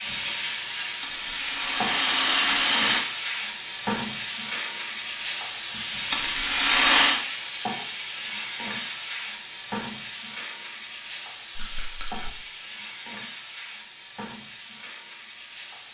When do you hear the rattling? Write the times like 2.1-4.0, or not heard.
1.0-3.0, 6.1-7.2, 11.6-12.3.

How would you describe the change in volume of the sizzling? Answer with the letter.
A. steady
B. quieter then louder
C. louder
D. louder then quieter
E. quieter
E.